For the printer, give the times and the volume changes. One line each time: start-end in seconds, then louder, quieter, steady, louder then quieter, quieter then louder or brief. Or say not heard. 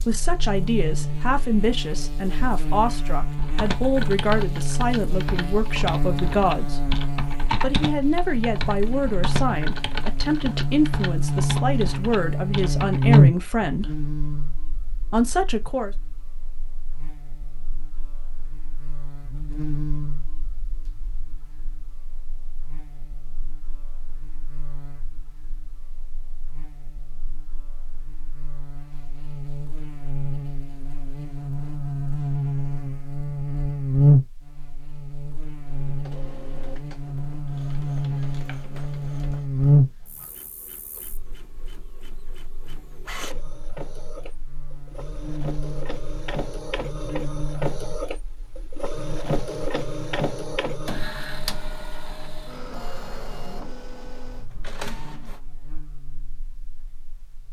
35.6-55.4 louder then quieter.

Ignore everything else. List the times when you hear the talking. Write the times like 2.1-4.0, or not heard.
0.1-6.9, 7.5-14.0, 15.1-15.9.